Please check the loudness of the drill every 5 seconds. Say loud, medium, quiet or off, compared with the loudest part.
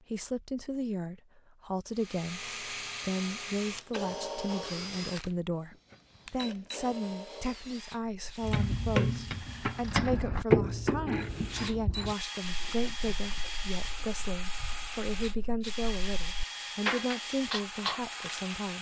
loud, medium, loud, loud.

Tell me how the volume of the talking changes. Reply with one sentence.
The loudness of the talking stays about the same.